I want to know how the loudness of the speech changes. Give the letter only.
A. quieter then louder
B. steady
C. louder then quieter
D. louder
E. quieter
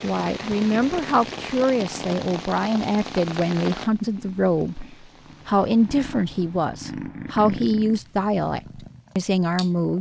B.